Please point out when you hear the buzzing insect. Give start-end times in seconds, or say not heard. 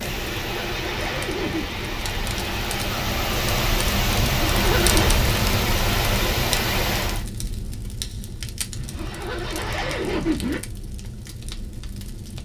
not heard.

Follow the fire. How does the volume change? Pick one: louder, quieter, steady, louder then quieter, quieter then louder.
louder then quieter.